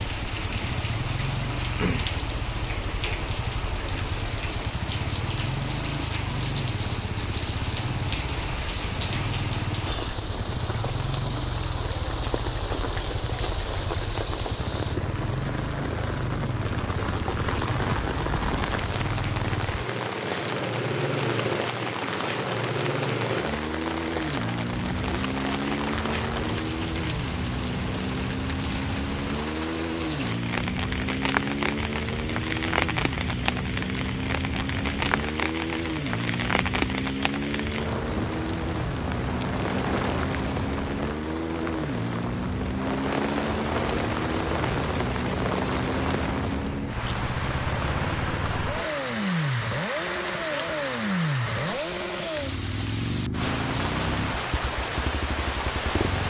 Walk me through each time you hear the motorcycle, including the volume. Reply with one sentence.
You can hear the motorcycle from 0.0 to 56.2 s, at a steady volume.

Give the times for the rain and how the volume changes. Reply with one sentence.
The rain can be heard from 0.0 to 56.2 s, at a steady volume.